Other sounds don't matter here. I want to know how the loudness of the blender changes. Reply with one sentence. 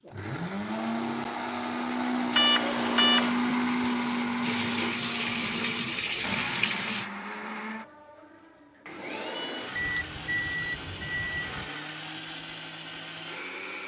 The loudness of the blender goes down.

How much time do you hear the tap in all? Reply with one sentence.
The tap can be heard for 4 seconds in total.